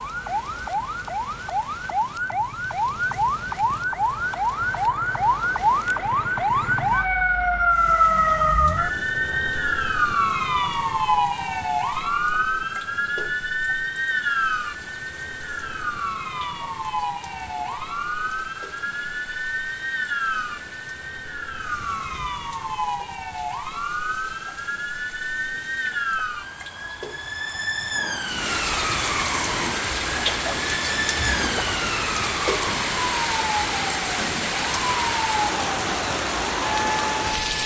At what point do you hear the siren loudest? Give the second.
8 s.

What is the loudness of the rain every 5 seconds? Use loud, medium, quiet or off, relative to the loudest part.
quiet, quiet, quiet, quiet, quiet, medium, loud, loud.